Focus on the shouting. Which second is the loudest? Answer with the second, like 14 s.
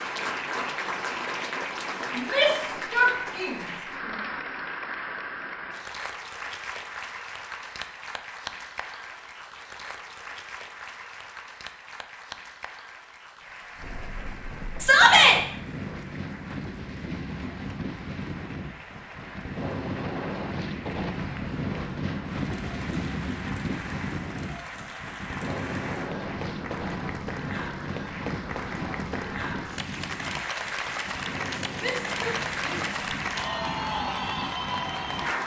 15 s.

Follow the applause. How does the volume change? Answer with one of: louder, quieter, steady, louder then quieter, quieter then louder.
quieter then louder.